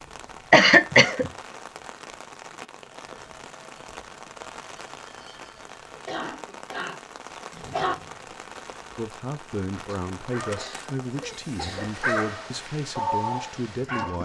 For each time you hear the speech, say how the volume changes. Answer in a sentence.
You can hear the speech from 8.9 to 14.2 s, at a steady volume.